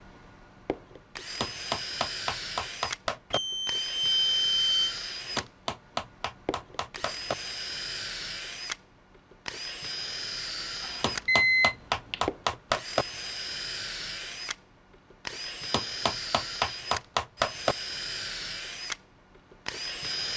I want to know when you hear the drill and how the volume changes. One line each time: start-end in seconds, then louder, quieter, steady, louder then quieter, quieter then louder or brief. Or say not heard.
0.0-20.3 steady.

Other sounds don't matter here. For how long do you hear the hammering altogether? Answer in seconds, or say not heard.
8 s.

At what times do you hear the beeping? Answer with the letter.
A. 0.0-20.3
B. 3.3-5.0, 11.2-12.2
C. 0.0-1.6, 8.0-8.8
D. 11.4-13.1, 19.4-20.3
B.